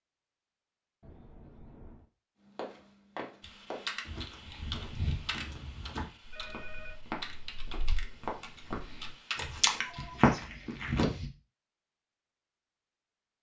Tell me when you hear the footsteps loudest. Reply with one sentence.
The volume of the footsteps peaks at 10 seconds.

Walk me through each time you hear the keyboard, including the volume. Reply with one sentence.
You can hear the keyboard from 3.4 to 9.8 s, getting quieter then louder.